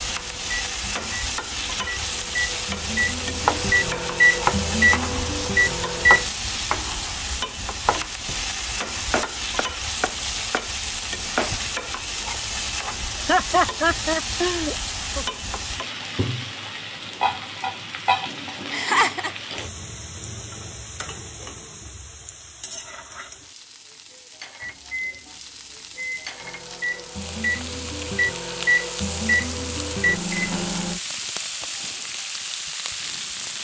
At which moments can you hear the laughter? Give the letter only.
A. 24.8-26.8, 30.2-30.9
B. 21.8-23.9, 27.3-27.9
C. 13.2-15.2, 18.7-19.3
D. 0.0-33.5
C.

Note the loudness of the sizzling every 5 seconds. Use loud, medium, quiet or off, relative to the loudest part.
loud, loud, loud, loud, medium, medium, loud.